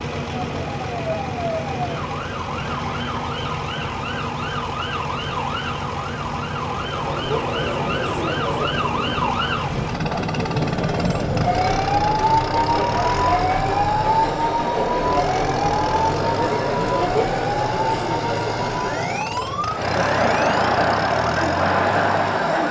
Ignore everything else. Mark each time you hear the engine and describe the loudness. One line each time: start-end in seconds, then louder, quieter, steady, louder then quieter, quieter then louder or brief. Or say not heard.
0.0-22.6 steady.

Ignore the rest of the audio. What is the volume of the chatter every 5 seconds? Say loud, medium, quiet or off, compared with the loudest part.
off, medium, medium, medium, loud.